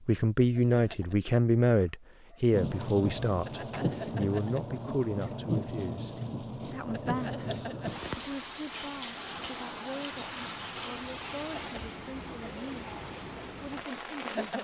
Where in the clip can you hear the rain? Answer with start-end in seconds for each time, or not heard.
2.5-14.5.